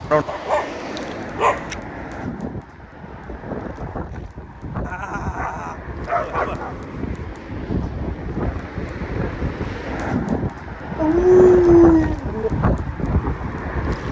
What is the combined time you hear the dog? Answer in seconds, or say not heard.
5 s.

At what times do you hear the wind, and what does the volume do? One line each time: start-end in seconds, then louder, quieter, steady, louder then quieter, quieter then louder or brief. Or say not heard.
0.0-14.0 louder.